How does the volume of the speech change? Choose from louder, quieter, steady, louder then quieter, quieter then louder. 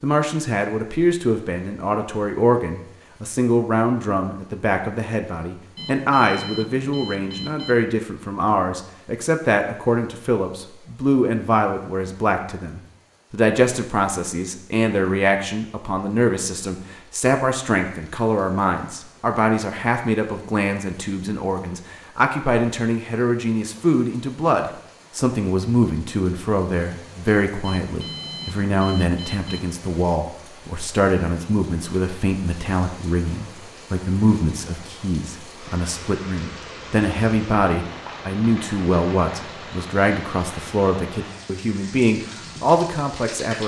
steady.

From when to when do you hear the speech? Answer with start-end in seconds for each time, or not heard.
0.0-43.6.